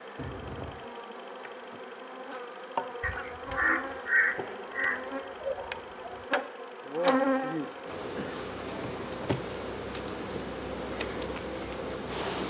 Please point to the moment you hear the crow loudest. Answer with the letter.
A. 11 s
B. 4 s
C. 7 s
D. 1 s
B.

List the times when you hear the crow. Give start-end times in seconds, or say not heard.
3.0-6.2.